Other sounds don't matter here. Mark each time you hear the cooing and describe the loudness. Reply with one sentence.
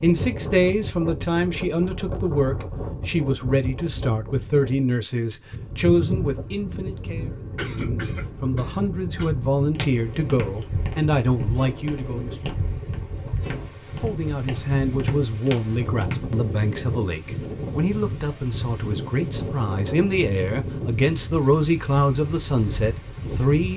You can't hear the cooing here.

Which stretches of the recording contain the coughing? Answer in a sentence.
You can hear the coughing from 7.5 to 9.3 s.